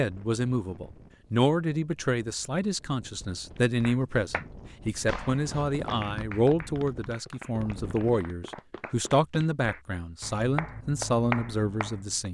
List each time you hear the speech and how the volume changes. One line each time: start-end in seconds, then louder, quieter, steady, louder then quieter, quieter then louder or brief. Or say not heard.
0.0-12.2 steady.